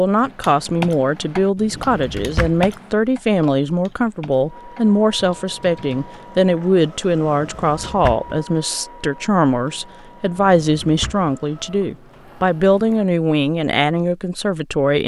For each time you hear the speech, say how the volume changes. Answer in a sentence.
The speech can be heard from 0.0 to 15.0 s, at a steady volume.